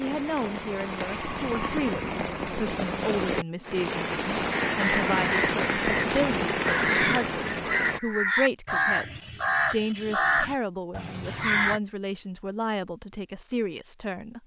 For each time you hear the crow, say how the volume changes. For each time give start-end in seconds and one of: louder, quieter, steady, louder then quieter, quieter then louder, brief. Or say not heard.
4.5-11.8 steady.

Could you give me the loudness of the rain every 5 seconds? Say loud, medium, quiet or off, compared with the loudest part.
loud, loud, off.